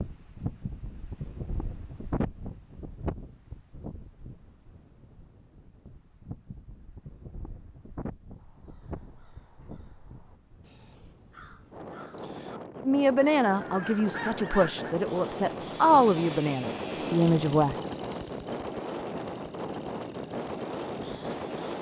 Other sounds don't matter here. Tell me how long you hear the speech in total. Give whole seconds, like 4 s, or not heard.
5 s.